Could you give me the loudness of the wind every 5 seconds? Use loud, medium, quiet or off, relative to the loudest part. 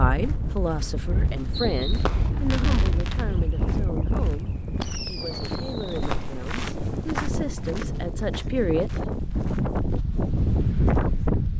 medium, medium, loud.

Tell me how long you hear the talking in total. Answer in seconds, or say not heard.
9 s.